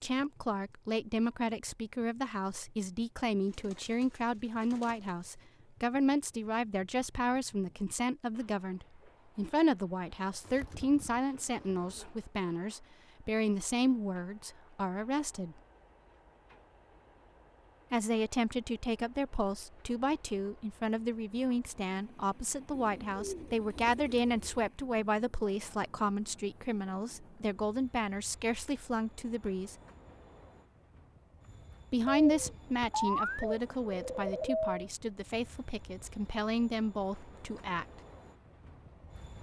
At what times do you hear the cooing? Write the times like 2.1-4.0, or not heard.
3.4-5.3, 10.4-12.1, 22.7-24.7, 32.0-34.8.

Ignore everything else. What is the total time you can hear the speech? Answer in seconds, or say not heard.
33 s.